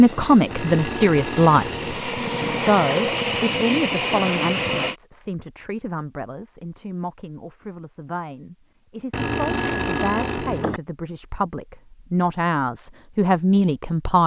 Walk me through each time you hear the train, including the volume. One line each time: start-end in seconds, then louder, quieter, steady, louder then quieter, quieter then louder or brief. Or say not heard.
0.0-5.0 louder.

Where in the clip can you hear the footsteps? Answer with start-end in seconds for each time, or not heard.
not heard.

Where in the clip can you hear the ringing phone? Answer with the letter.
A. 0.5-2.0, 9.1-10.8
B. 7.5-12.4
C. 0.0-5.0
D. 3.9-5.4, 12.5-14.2
A.